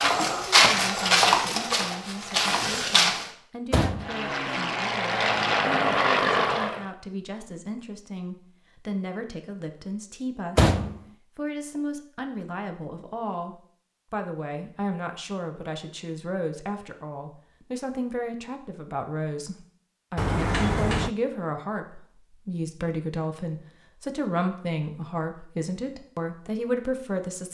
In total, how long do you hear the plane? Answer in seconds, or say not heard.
3 s.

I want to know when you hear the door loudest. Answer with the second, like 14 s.
11 s.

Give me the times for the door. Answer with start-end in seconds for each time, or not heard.
3.7-4.2, 10.6-11.0, 20.1-21.1.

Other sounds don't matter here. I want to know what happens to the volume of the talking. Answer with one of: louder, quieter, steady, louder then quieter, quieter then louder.
louder.